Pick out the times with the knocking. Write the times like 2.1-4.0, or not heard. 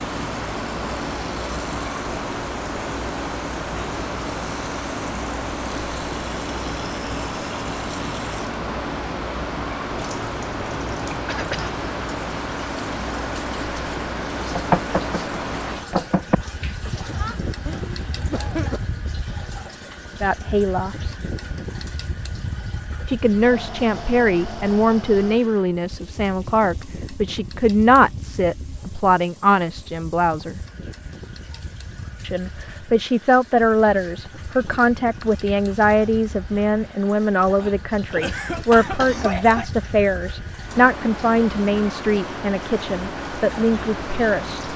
14.3-16.4.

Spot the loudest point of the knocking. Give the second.
15 s.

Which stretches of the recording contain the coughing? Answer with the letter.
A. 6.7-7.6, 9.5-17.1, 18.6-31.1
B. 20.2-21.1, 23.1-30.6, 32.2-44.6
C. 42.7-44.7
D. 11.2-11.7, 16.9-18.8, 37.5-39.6
D.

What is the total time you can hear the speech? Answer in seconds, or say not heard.
21 s.